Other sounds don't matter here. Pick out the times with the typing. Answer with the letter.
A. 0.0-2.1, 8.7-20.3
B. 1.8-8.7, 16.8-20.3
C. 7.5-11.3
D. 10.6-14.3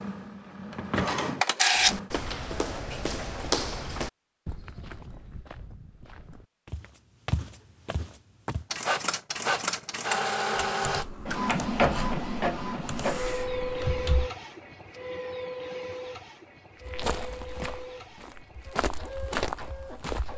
D.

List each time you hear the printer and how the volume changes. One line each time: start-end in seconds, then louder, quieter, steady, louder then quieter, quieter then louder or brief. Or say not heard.
0.0-2.1 brief
8.7-20.3 quieter.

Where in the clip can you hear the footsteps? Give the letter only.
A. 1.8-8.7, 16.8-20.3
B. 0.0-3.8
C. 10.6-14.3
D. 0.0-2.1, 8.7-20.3
A.